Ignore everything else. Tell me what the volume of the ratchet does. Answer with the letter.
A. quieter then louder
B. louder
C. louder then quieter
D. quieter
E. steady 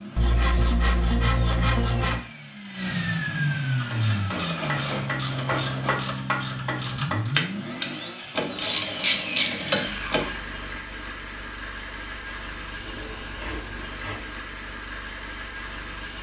B.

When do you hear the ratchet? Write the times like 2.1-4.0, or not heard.
3.8-10.3.